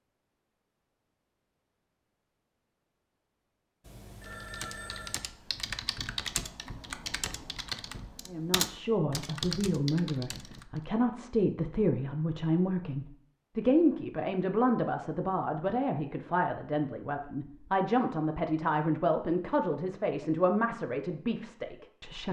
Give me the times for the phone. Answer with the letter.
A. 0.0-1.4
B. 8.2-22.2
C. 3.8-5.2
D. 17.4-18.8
C.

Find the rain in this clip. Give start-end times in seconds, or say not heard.
not heard.